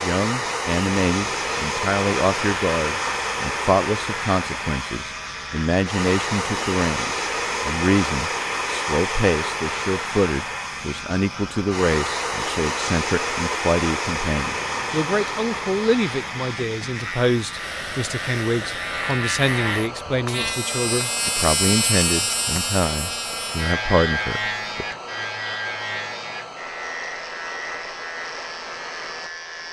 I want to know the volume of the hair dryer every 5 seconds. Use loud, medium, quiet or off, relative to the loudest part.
loud, loud, loud, medium, medium, medium.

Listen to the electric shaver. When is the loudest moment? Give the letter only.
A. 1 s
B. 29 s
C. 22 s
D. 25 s
C.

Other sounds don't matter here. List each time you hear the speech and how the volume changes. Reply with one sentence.
The speech can be heard from 0.0 to 24.9 s, at a steady volume.